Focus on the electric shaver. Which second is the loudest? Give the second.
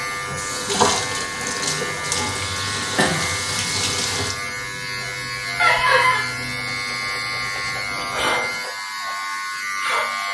8 s.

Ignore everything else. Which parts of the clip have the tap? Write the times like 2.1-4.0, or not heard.
0.0-4.3.